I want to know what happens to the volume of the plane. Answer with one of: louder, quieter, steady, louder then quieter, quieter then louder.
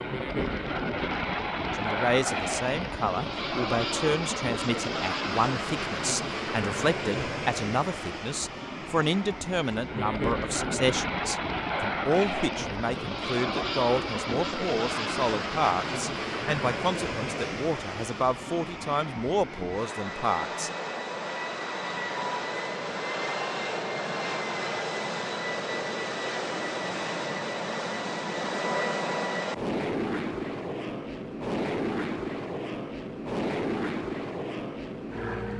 steady.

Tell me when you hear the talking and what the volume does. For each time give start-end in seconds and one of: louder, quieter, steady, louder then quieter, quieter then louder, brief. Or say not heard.
1.8-20.7 steady.